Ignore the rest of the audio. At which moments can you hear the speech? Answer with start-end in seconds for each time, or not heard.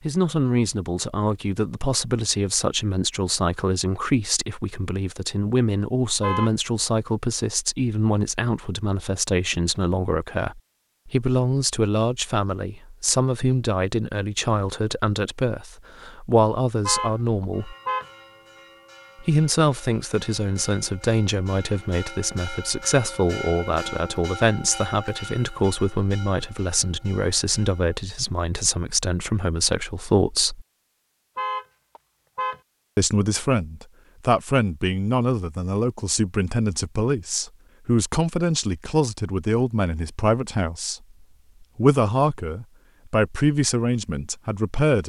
0.0-17.8, 19.2-30.6, 33.0-41.0, 41.8-45.0.